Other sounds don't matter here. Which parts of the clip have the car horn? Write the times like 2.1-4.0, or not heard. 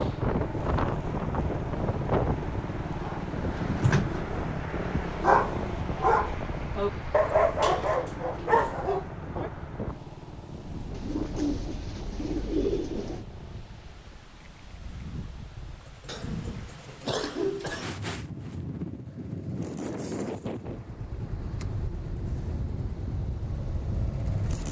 not heard.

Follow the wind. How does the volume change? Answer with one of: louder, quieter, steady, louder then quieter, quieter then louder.
quieter then louder.